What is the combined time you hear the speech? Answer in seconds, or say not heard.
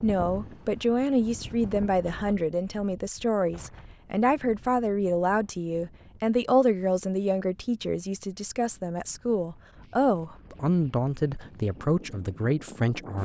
13 s.